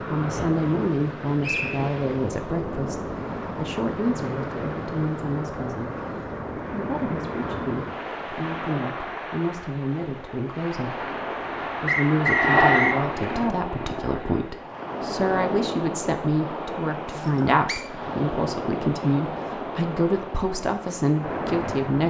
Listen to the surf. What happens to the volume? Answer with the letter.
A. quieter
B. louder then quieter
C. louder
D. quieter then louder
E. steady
E.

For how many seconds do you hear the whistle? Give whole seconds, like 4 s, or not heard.
2 s.